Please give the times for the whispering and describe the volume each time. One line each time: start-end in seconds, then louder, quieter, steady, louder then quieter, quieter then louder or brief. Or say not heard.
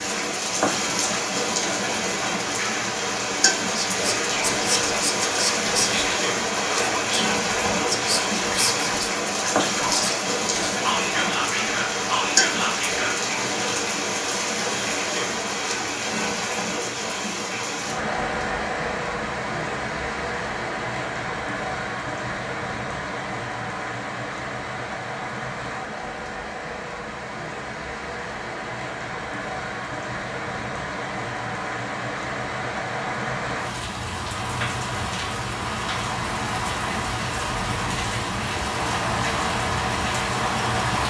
3.6-13.2 steady.